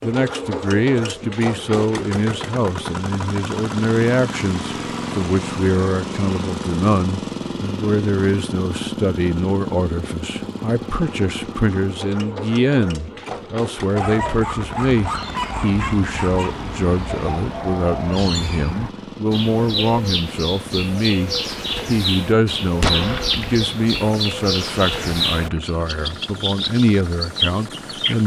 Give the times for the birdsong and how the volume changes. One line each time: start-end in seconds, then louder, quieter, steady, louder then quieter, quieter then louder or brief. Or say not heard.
13.9-28.2 louder.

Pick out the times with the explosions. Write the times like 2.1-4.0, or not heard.
22.8-23.6.